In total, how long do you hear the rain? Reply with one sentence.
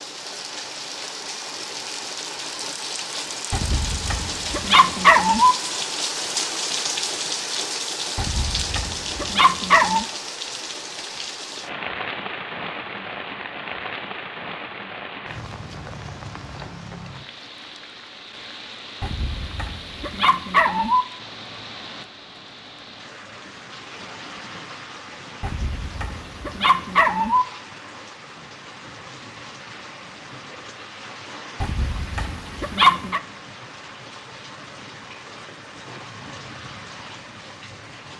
The rain can be heard for 38 seconds in total.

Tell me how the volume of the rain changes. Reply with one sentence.
The volume of the rain goes down.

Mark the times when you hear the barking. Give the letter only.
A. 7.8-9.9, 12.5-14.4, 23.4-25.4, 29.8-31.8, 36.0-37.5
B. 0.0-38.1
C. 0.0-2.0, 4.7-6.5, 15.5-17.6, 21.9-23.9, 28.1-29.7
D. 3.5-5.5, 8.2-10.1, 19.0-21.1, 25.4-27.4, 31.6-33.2
D.